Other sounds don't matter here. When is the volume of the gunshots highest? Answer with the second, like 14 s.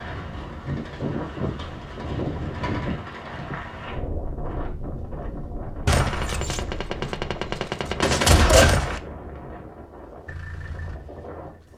8 s.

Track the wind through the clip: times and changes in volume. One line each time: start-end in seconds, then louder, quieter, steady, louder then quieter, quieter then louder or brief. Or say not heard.
0.0-11.7 quieter.